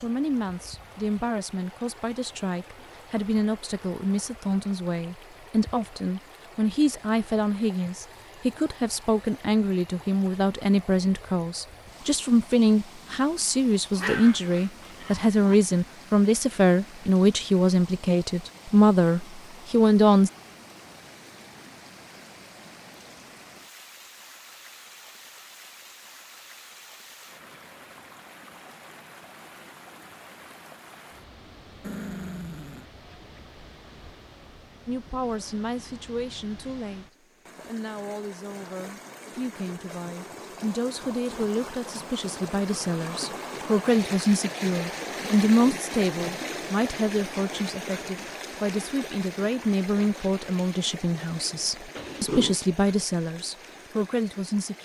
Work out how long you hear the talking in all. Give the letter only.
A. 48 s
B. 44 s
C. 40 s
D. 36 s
C.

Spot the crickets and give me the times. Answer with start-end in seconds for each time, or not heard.
not heard.